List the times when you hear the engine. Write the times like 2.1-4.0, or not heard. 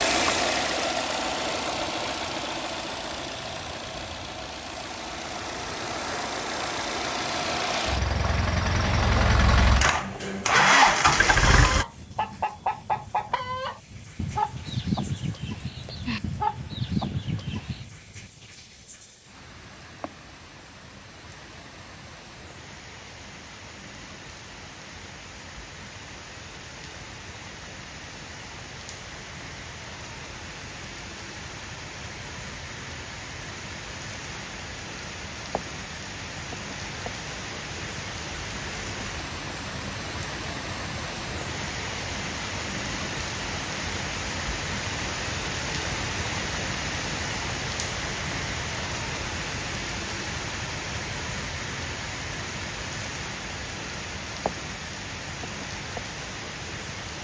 0.0-11.8.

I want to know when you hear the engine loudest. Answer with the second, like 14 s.
11 s.